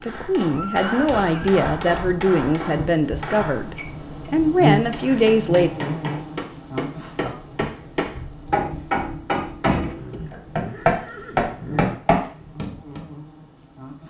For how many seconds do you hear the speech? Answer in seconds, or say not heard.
6 s.